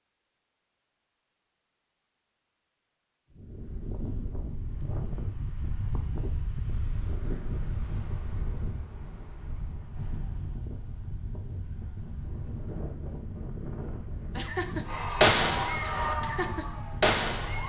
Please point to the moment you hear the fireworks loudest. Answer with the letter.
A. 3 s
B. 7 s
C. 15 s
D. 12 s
C.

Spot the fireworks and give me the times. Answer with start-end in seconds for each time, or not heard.
14.3-17.6.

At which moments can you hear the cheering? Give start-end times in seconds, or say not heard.
14.8-17.6.